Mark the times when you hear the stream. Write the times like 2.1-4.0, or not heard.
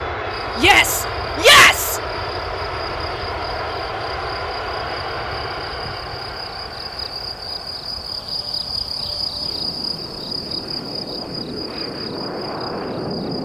not heard.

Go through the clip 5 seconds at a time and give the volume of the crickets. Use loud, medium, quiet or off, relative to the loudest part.
medium, loud, loud.